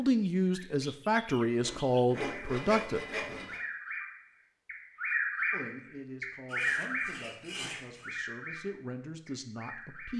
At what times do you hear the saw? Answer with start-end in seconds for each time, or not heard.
1.6-3.6, 6.5-8.1.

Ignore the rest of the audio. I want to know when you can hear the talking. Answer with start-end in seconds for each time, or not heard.
0.0-3.0, 5.5-10.1.